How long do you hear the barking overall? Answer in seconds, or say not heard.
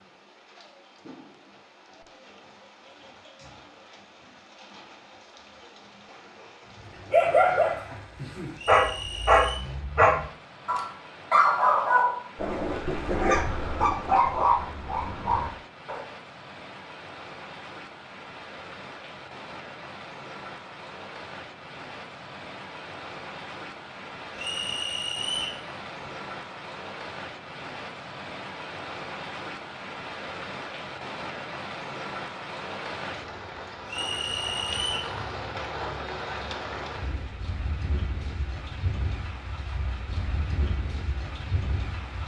9 s.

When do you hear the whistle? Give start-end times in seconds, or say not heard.
8.6-9.6, 24.4-25.6, 33.9-35.1.